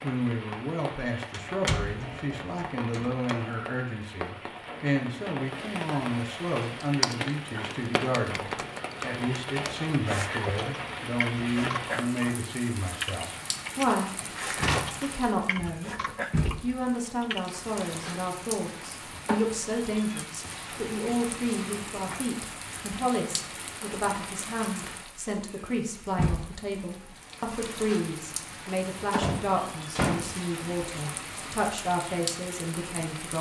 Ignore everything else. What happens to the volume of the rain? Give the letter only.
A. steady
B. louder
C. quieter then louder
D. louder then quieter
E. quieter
A.